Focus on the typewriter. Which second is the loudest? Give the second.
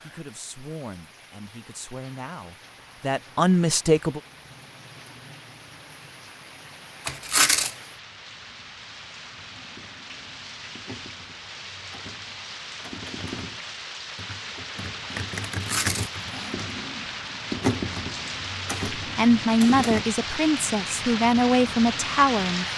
18 s.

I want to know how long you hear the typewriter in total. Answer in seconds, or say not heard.
11 s.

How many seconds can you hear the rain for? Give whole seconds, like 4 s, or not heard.
23 s.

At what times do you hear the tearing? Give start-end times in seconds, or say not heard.
7.0-7.7, 15.5-16.1.